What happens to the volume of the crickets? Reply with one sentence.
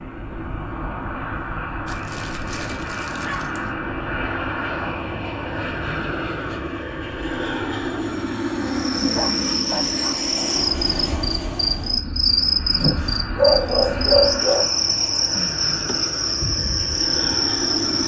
The volume of the crickets stays about the same.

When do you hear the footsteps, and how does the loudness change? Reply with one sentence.
The footsteps can't be heard in this clip.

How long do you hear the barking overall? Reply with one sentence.
The barking can be heard for 5 seconds in total.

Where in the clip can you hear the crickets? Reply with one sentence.
The crickets can be heard from 8.6 to 18.0 s.